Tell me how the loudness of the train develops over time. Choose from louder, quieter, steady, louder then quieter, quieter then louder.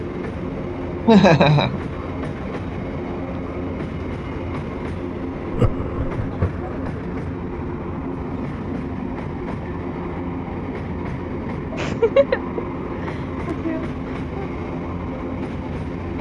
steady.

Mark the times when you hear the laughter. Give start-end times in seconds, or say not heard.
1.1-1.8, 5.5-6.7, 11.7-14.5.